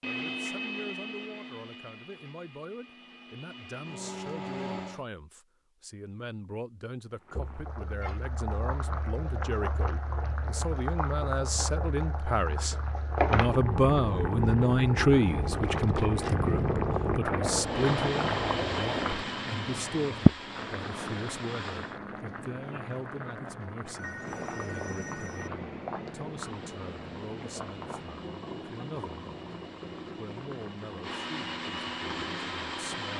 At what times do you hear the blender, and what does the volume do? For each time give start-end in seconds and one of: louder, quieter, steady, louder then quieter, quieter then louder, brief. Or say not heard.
0.0-5.0 quieter then louder
17.6-22.0 quieter
26.4-33.1 louder.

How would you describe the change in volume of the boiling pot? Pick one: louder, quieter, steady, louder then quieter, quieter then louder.
louder then quieter.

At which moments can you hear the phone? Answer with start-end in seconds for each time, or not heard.
23.9-25.5.